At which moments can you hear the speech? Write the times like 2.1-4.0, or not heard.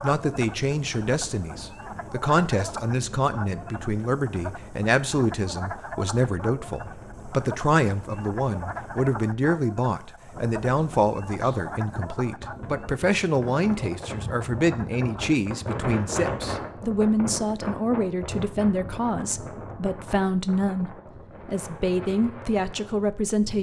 0.0-23.5.